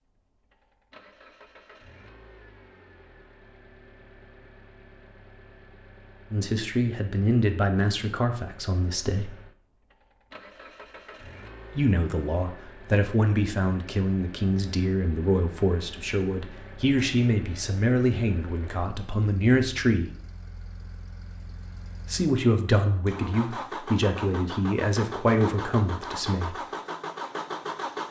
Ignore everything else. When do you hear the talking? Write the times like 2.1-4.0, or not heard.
6.3-9.3, 11.8-20.1, 22.1-26.6.